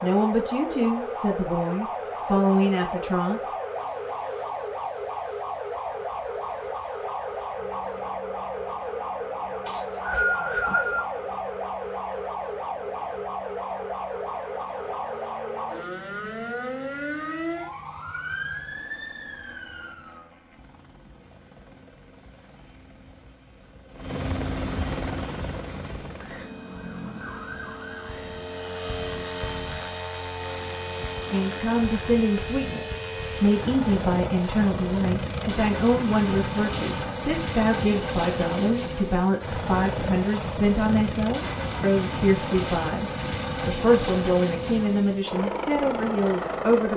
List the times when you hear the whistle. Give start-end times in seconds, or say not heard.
9.7-11.1.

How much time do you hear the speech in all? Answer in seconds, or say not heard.
19 s.